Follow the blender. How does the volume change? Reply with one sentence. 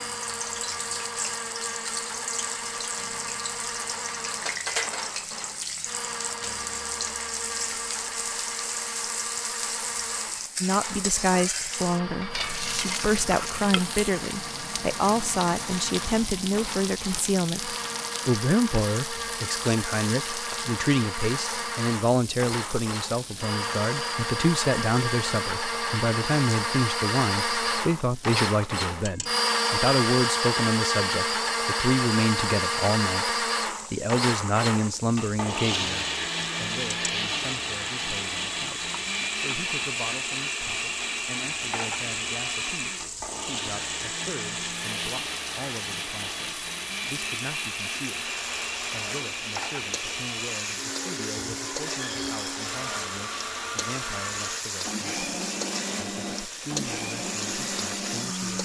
The volume of the blender goes up, then down.